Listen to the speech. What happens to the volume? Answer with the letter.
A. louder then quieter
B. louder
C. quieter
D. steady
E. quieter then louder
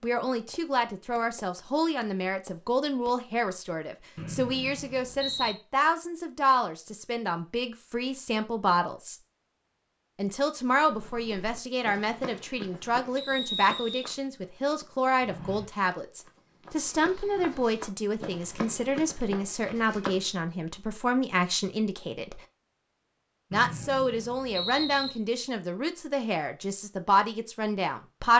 D.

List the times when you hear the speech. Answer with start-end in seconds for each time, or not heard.
0.0-9.2, 10.2-22.4, 23.5-28.3.